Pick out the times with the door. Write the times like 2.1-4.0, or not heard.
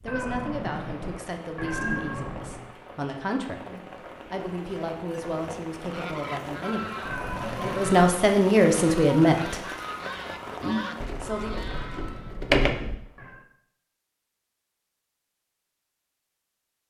11.0-12.9.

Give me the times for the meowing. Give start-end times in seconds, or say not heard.
0.1-2.7, 7.0-8.1, 11.7-13.5.